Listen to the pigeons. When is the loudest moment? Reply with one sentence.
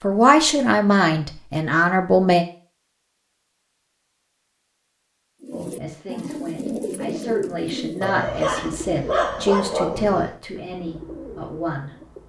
The volume of the pigeons peaks at 7 seconds.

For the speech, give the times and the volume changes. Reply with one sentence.
The speech can be heard briefly from 0.0 to 2.5 s; and from 5.5 to 11.9 s, getting louder then quieter.